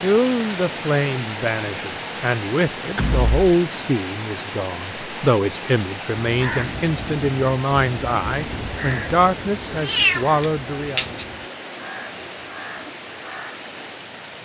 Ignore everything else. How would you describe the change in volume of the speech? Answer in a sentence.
The volume of the speech stays about the same.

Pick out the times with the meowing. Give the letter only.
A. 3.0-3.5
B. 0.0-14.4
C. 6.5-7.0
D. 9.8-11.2
D.